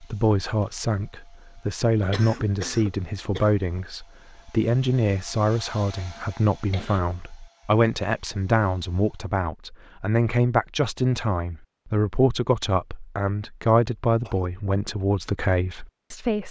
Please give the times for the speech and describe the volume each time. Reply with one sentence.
You can hear the speech from 0.0 to 16.4 s, at a steady volume.